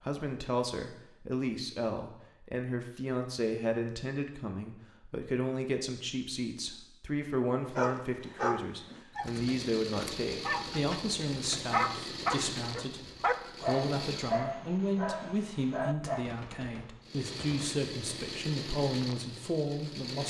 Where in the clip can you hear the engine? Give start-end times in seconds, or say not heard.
9.2-14.4, 17.0-20.2.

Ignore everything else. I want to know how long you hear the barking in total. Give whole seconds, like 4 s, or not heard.
9 s.